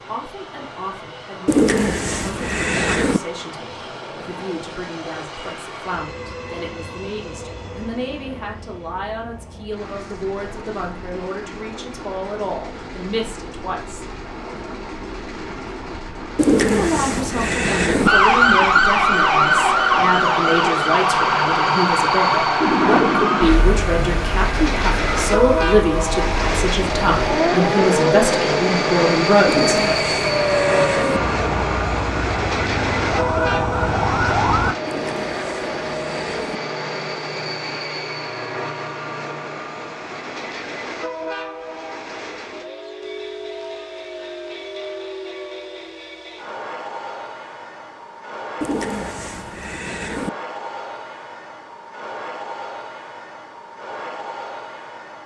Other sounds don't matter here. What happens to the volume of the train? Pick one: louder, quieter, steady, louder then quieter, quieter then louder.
louder then quieter.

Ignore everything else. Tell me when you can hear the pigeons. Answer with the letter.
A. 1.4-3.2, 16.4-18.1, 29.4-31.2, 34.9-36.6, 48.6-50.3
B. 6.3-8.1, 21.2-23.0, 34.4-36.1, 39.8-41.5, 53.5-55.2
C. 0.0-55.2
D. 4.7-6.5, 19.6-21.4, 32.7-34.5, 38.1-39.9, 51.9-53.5
A.